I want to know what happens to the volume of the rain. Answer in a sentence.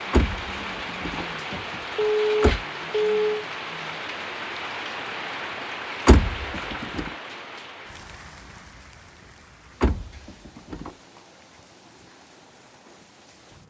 The loudness of the rain goes down.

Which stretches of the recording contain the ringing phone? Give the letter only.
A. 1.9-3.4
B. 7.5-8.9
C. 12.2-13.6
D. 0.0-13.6
A.